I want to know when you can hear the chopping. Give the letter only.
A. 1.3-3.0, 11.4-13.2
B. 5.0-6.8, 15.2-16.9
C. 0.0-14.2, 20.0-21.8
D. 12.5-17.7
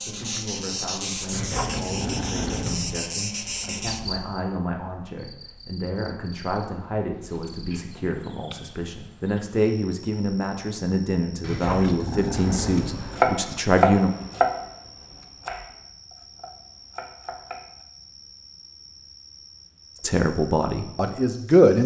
D.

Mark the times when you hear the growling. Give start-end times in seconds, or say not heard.
1.3-3.0, 11.4-13.2.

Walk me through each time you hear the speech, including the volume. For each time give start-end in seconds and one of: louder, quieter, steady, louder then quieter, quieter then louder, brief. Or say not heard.
0.0-14.2 louder
20.0-21.8 brief.